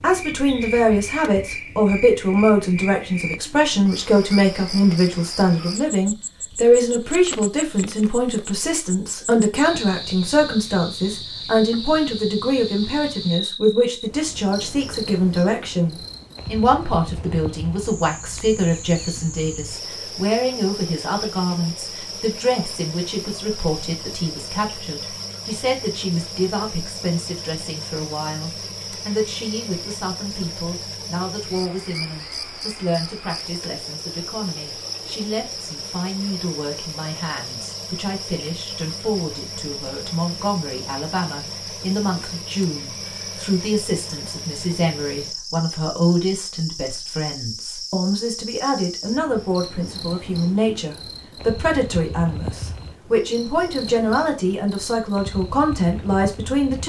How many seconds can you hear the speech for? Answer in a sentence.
You can hear the speech for 57 seconds altogether.